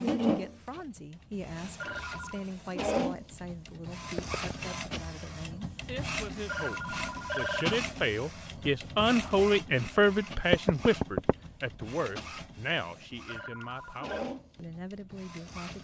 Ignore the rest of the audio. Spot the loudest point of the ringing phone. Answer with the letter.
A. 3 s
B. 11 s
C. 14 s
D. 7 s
D.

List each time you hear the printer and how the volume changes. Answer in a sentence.
The printer can be heard from 0.0 to 15.7 s, getting quieter.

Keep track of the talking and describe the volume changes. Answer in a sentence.
The loudness of the talking goes up, then down.